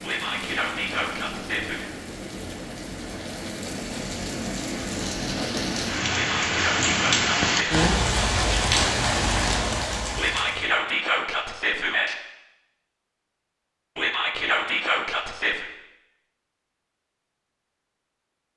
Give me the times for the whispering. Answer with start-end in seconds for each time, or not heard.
0.0-1.9, 6.1-7.8, 10.2-12.2, 13.9-15.7.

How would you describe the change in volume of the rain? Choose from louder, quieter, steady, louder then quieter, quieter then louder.
louder.